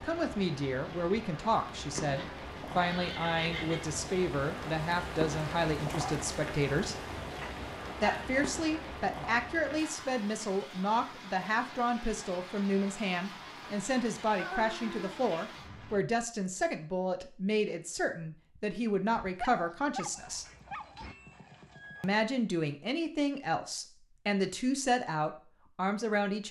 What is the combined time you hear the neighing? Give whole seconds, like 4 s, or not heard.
5 s.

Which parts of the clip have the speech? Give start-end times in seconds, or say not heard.
0.0-7.0, 8.0-20.4, 22.0-26.4.